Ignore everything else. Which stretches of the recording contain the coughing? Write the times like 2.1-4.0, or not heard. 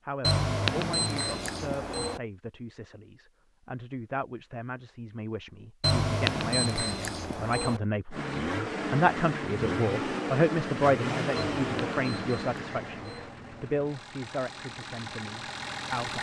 not heard.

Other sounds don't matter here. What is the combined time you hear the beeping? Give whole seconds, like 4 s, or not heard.
6 s.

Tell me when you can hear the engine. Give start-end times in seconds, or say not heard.
8.1-16.1.